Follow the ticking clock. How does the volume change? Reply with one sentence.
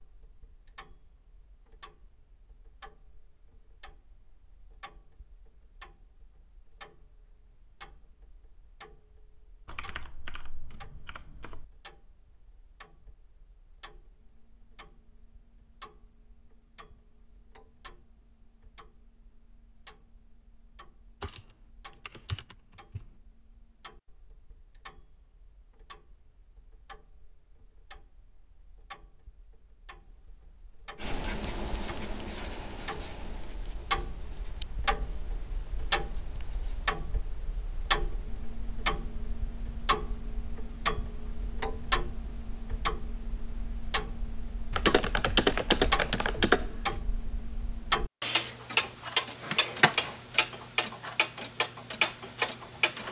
The loudness of the ticking clock goes up.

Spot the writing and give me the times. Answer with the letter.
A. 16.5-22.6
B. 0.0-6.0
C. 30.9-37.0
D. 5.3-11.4
C.